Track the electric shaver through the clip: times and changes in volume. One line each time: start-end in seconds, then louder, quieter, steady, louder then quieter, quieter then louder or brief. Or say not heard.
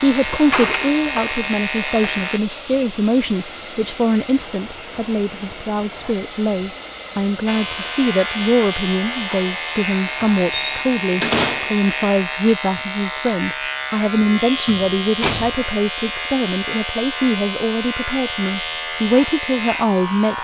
0.0-2.4 brief
7.5-20.4 steady.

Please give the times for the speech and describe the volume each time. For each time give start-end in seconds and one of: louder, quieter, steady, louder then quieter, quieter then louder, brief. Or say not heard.
0.0-20.4 steady.